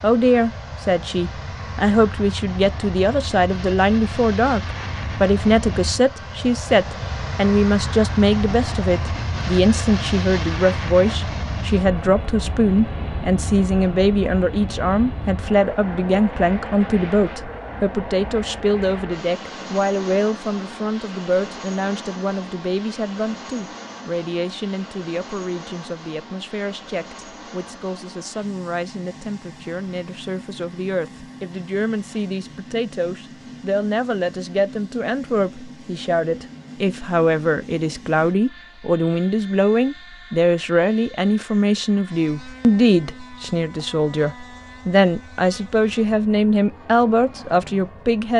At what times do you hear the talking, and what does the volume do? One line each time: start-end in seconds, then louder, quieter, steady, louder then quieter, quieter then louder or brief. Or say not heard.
0.0-48.3 quieter then louder.